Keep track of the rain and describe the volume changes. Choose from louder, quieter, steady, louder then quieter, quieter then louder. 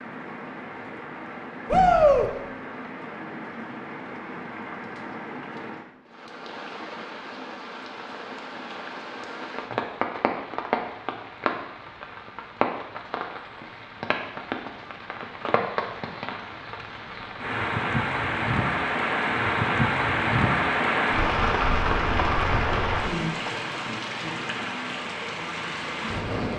louder.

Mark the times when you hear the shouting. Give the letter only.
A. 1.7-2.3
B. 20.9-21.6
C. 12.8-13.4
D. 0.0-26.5
A.